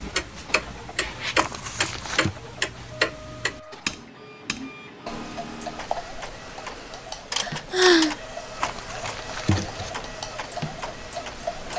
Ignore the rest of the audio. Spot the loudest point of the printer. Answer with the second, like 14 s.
8 s.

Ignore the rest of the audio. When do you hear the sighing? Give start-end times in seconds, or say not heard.
7.4-8.2.